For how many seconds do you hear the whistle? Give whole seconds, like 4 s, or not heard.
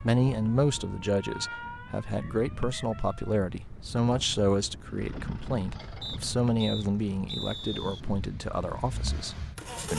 3 s.